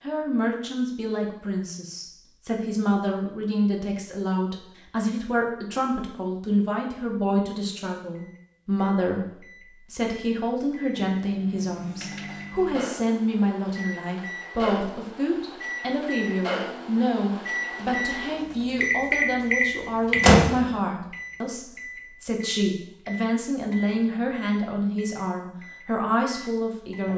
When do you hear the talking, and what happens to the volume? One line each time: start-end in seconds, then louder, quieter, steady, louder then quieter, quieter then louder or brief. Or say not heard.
0.0-27.1 steady.